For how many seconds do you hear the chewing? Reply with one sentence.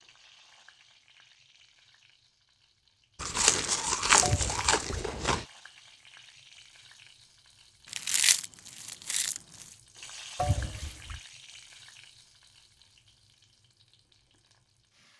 The chewing can be heard for 4 seconds in total.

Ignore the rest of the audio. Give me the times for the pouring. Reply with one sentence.
The pouring can be heard from 4.2 to 4.8 s and from 10.3 to 11.2 s.